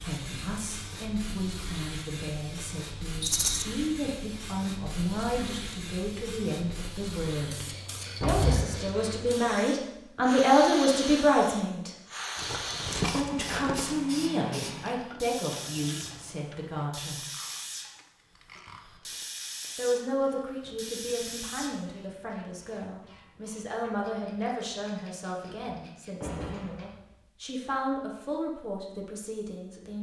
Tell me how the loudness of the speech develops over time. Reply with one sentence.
The volume of the speech goes up, then down.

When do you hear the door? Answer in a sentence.
The door can be heard from 8.2 to 8.9 s and from 25.4 to 27.1 s.